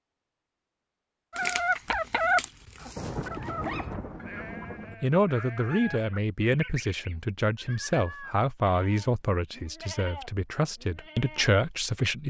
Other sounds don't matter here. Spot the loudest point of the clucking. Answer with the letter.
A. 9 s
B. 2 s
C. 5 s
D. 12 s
B.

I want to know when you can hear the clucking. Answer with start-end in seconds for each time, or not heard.
1.4-7.2.